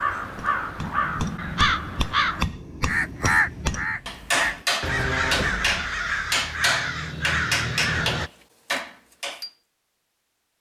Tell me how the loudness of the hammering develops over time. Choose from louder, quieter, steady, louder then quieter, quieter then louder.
louder.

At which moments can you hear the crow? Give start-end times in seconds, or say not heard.
0.0-8.3.